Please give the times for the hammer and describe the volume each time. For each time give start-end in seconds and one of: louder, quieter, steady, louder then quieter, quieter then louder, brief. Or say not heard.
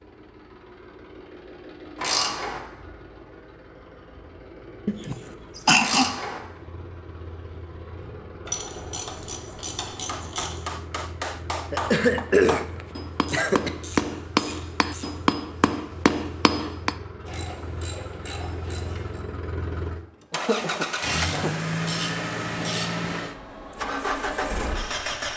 9.9-16.9 louder.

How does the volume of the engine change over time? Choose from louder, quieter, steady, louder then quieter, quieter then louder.
louder.